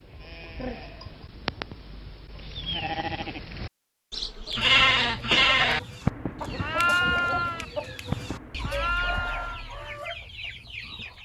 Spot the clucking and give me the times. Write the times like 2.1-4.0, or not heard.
4.3-11.2.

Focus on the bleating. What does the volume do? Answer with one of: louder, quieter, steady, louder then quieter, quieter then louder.
louder then quieter.